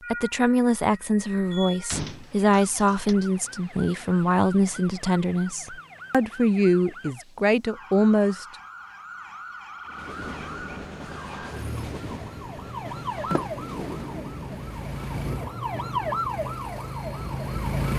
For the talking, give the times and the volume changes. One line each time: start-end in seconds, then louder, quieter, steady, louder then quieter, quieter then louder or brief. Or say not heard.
0.1-8.4 steady.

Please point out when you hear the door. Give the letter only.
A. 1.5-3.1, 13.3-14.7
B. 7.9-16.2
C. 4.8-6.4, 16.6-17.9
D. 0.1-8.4
A.